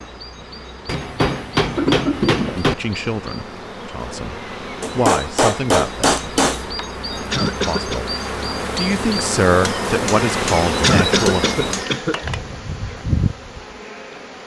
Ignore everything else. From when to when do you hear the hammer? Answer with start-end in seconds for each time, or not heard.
0.8-2.8, 4.8-6.7, 9.7-12.4.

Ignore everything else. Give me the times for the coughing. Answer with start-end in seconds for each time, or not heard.
1.6-2.6, 7.3-8.1, 10.8-12.2.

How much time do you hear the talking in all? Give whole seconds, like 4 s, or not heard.
6 s.